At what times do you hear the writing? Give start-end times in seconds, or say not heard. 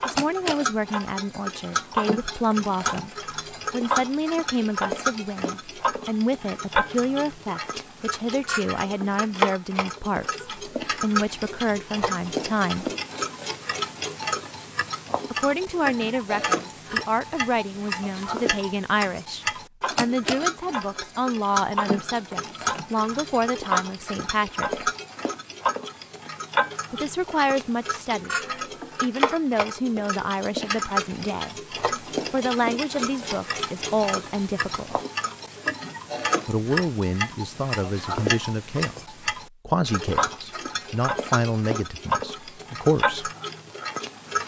not heard.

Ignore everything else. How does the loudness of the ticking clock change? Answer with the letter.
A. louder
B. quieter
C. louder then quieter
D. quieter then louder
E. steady
E.